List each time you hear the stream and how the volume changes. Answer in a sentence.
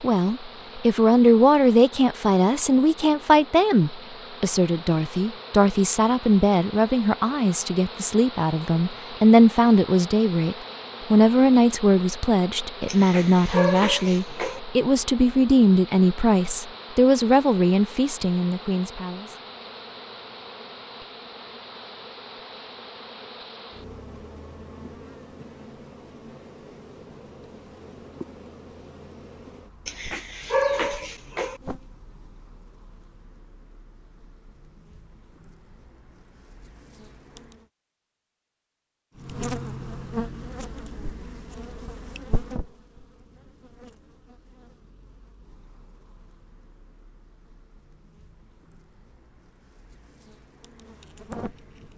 You can't hear the stream here.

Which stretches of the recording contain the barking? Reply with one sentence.
You can hear the barking from 12.8 to 14.6 s and from 29.9 to 31.6 s.